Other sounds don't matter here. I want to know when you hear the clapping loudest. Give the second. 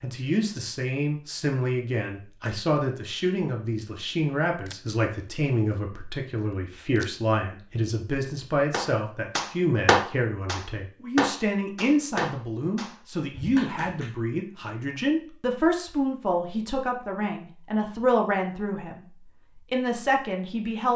10 s.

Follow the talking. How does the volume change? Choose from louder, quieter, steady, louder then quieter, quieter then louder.
steady.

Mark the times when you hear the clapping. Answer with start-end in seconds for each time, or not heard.
8.7-14.2.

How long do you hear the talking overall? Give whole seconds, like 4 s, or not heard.
21 s.